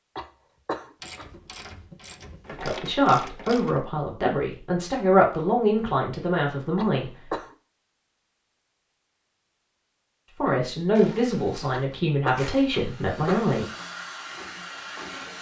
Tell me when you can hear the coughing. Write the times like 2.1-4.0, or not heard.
0.1-1.3, 6.8-7.5, 11.7-13.5.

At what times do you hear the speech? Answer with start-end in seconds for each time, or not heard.
2.5-7.1, 10.4-13.7.